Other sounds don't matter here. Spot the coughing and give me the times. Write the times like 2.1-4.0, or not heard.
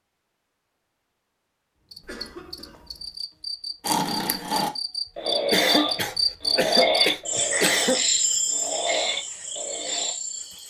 2.0-3.1, 5.5-8.1.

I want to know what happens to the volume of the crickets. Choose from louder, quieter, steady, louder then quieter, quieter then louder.
louder then quieter.